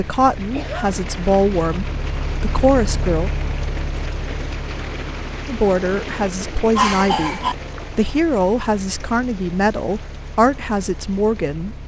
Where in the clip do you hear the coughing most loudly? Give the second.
7 s.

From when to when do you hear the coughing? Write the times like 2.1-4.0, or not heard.
0.5-1.0, 6.8-7.5.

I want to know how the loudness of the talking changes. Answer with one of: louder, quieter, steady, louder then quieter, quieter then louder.
steady.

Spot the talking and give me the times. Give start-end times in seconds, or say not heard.
0.0-3.3, 5.5-11.8.